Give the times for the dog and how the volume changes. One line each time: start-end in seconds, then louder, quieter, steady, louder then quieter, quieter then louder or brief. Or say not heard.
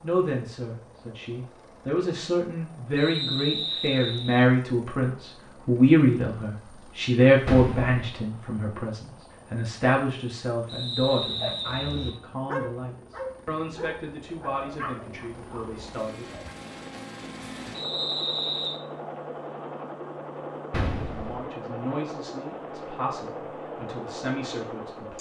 11.0-16.5 louder then quieter.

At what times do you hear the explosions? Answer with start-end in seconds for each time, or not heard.
7.5-8.1, 20.7-21.4.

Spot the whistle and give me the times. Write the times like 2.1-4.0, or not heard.
3.0-4.5, 10.7-12.2, 17.8-18.8.